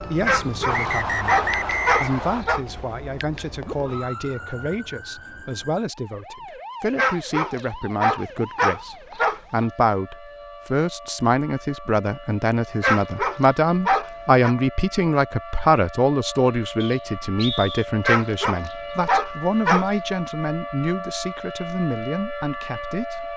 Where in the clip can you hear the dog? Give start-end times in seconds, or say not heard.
0.2-2.6, 7.0-9.4, 12.8-14.6, 18.0-19.9.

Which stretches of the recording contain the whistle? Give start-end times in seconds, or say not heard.
0.7-2.5, 16.8-17.9.